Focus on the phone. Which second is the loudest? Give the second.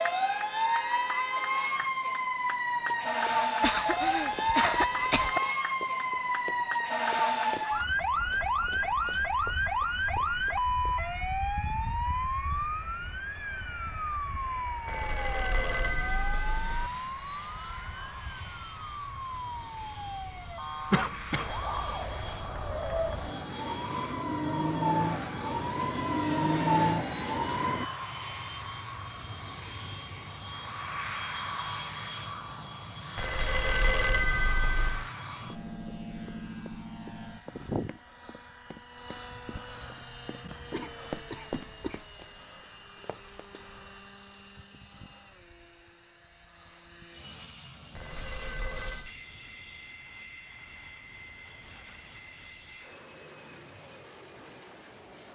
34 s.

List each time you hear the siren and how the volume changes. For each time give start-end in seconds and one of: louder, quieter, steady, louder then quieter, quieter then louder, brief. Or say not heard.
0.0-27.9 quieter then louder.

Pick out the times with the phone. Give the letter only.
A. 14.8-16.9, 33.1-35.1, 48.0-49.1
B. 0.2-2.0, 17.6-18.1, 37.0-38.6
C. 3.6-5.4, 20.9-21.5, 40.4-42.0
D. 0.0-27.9
A.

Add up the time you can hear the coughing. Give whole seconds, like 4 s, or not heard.
4 s.